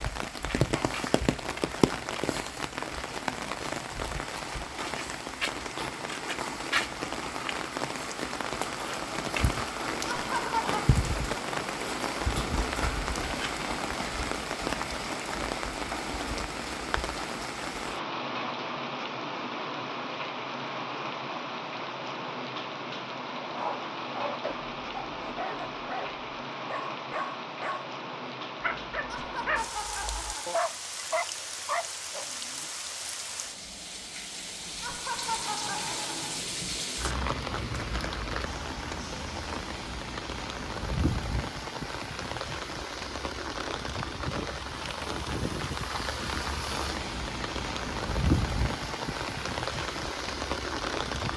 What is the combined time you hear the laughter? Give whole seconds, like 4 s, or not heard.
4 s.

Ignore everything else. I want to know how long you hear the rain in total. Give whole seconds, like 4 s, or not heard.
51 s.